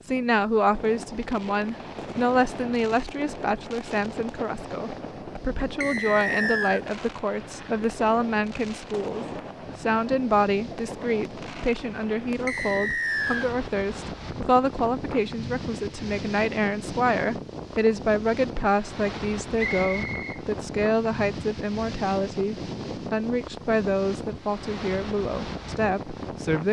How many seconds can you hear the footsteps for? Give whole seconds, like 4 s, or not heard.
not heard.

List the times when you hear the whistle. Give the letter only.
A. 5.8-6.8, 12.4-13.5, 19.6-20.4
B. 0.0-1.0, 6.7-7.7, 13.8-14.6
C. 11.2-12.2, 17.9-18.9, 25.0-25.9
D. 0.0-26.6
A.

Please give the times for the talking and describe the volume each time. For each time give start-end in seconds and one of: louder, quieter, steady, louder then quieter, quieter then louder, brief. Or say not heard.
0.0-26.6 steady.